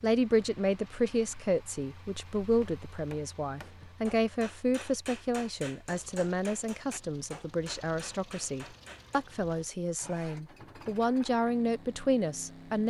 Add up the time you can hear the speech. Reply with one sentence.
You can hear the speech for 13 seconds altogether.